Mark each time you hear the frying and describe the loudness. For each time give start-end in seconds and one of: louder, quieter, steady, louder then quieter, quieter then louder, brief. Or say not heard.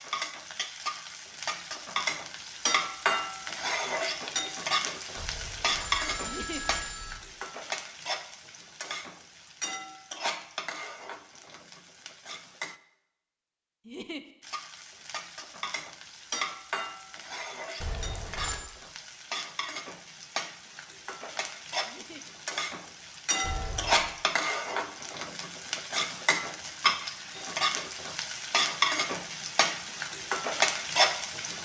0.0-12.8 quieter
14.4-31.6 louder.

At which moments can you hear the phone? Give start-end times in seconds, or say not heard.
5.2-7.2, 17.8-18.6, 23.4-24.1.